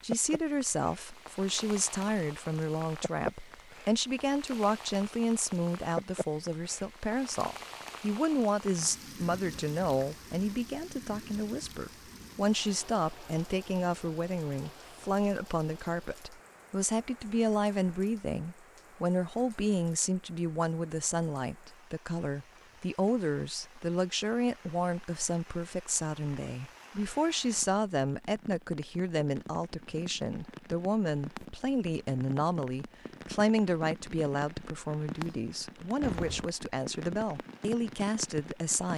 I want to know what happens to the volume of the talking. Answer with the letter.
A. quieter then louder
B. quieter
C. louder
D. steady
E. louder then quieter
D.